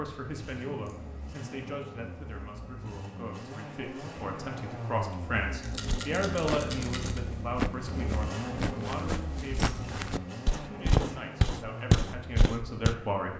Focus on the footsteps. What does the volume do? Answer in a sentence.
The volume of the footsteps goes up.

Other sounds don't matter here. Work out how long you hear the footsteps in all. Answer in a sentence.
You can hear the footsteps for 7 seconds altogether.